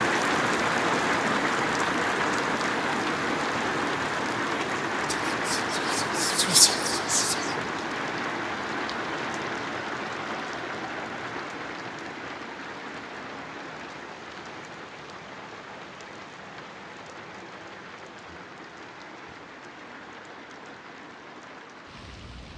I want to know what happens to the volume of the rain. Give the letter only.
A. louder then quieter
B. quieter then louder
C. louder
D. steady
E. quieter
E.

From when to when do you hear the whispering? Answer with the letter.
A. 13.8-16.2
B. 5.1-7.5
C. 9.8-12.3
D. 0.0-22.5
B.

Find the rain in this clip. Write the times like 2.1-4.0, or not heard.
0.0-22.5.